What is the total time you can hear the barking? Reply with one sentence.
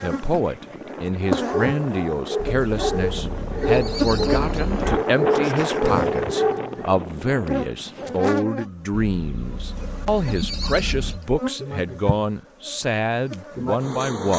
The barking can be heard for 6 seconds in total.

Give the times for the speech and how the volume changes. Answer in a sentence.
The speech can be heard from 0.0 to 14.3 s, at a steady volume.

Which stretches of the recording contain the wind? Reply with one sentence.
You can hear the wind from 0.0 to 8.4 s.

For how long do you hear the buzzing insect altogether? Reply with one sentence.
The buzzing insect can be heard for 14 seconds in total.